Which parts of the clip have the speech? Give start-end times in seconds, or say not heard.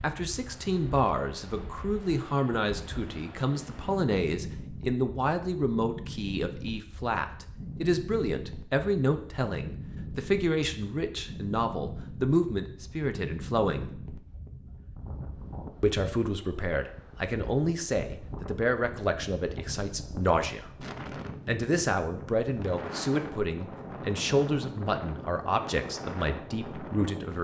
0.0-13.9, 15.8-20.7, 21.4-27.3.